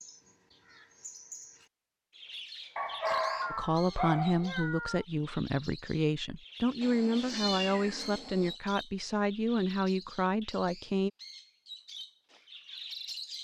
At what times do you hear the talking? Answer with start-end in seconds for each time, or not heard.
3.5-11.1.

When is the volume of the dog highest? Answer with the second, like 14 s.
3 s.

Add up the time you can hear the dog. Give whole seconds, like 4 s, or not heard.
2 s.